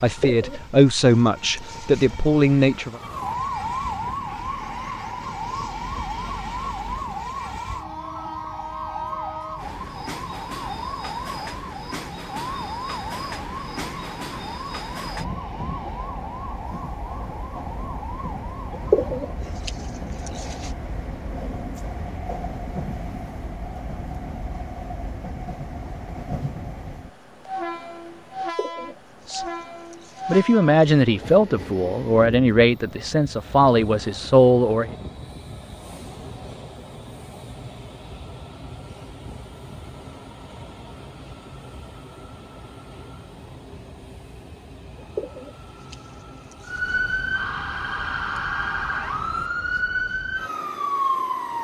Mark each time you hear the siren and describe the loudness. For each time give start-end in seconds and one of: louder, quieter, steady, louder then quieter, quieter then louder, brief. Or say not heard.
2.9-19.4 quieter
46.6-51.5 steady.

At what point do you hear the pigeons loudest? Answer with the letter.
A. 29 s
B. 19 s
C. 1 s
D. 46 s
B.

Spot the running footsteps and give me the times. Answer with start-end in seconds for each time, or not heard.
not heard.